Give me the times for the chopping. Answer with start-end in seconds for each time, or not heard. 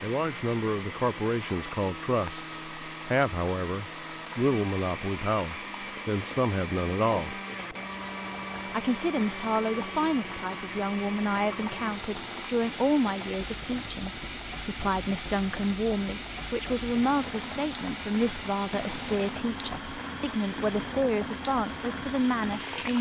not heard.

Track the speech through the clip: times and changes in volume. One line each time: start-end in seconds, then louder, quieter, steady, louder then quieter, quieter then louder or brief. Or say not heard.
0.0-7.4 steady
8.7-22.9 steady.